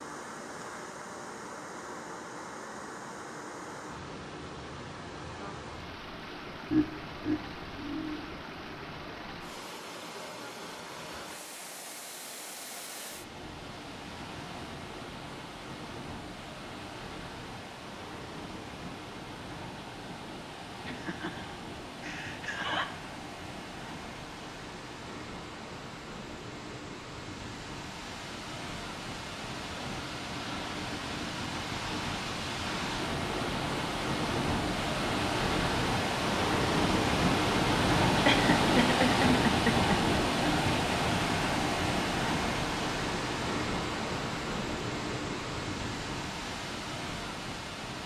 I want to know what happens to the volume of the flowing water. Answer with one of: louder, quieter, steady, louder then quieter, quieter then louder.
louder.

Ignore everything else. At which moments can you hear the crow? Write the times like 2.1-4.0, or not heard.
not heard.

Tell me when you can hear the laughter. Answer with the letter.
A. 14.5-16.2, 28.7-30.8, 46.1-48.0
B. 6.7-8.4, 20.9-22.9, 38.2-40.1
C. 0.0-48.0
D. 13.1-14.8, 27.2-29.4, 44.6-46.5
B.